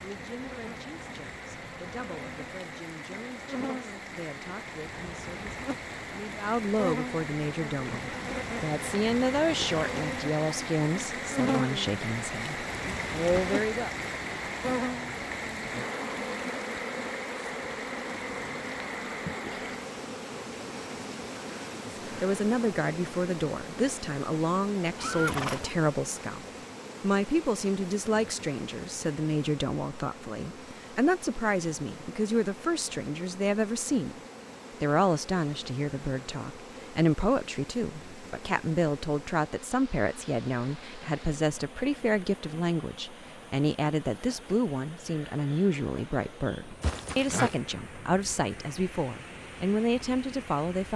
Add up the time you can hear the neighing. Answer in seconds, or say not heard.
2 s.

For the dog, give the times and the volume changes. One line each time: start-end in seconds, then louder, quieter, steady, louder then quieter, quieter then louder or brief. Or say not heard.
not heard.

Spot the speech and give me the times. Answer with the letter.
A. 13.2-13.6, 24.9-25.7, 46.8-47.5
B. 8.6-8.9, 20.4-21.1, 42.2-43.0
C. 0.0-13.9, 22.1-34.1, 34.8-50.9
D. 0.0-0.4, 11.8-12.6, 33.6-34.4
C.